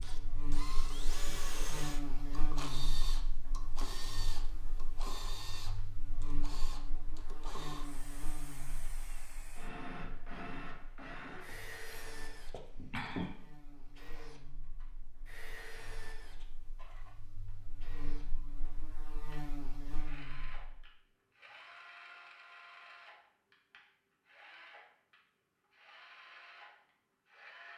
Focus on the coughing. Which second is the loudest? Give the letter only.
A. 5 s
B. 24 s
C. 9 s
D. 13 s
D.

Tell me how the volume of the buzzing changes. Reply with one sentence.
The loudness of the buzzing goes down, then up.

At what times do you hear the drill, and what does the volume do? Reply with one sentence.
The drill can be heard from 0.0 to 27.7 s, getting quieter.